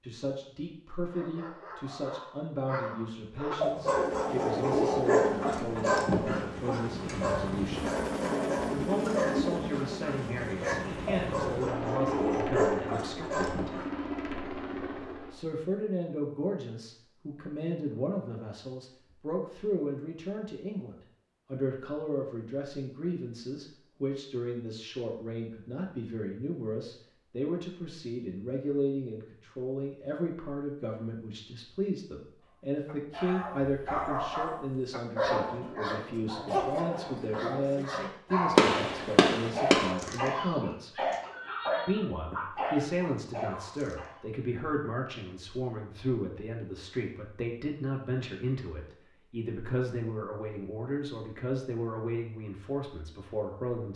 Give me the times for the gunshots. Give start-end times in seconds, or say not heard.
38.5-40.0.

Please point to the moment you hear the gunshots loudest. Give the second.
39 s.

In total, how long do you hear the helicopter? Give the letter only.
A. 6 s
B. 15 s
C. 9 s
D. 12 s
D.